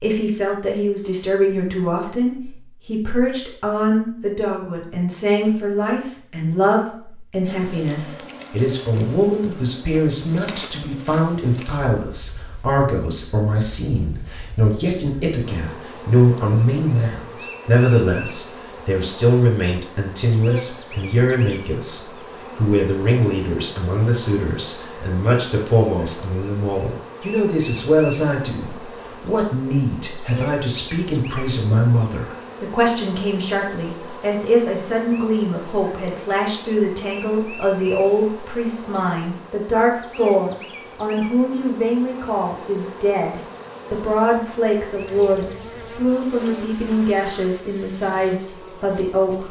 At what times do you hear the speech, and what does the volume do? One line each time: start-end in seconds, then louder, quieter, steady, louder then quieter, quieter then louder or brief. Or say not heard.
0.0-49.4 steady.